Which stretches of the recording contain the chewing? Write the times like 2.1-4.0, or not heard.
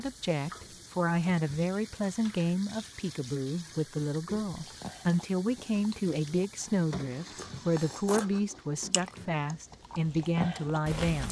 4.5-11.2.